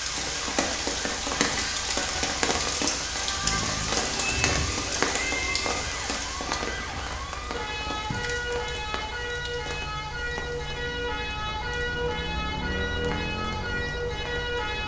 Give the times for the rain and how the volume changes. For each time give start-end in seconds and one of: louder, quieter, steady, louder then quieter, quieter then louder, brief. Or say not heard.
0.0-14.8 quieter.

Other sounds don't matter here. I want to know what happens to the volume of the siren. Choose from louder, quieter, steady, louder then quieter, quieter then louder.
louder.